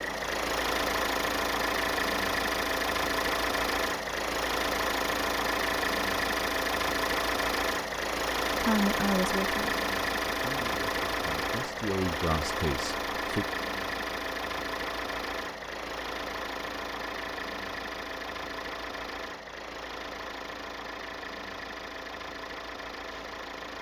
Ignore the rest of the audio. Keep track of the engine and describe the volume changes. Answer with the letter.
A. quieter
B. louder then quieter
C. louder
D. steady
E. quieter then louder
A.